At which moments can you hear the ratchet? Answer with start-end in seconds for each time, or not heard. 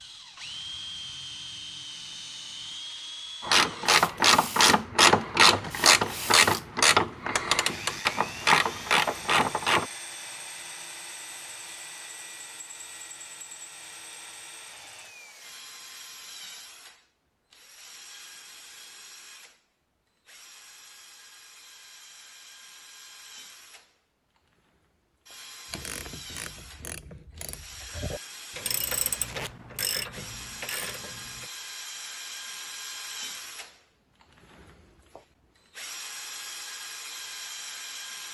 3.4-9.8, 25.7-31.4.